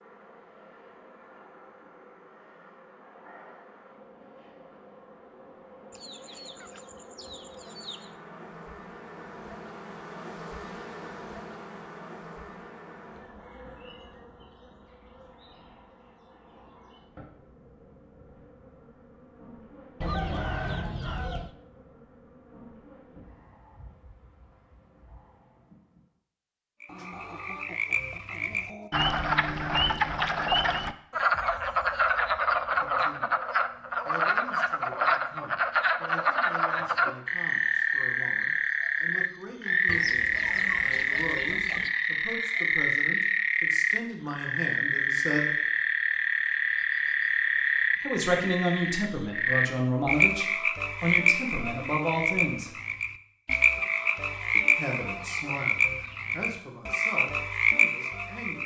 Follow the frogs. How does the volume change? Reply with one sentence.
The loudness of the frogs stays about the same.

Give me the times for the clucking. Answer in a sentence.
You can hear the clucking from 5.9 to 8.2 s, from 20.0 to 21.6 s, from 26.9 to 28.9 s, from 39.9 to 41.9 s and from 53.5 to 56.2 s.